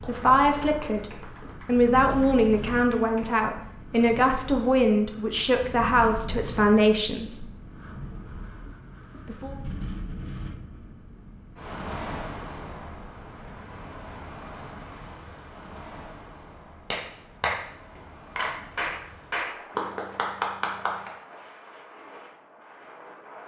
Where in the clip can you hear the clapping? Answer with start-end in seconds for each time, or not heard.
0.0-3.4, 16.9-21.1.